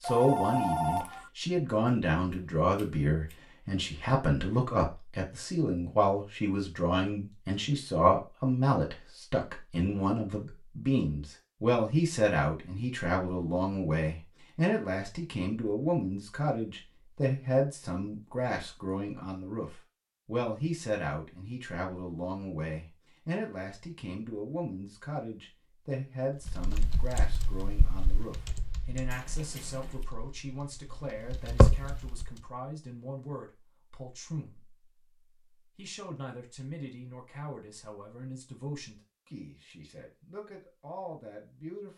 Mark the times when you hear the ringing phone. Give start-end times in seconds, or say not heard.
0.0-1.3.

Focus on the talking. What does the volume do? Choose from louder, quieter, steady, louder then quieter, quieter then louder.
quieter.